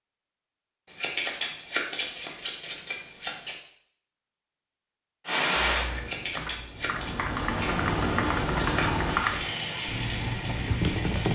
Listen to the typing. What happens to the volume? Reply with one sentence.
The volume of the typing goes up.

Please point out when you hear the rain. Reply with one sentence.
You can hear the rain from 5.2 to 11.3 s.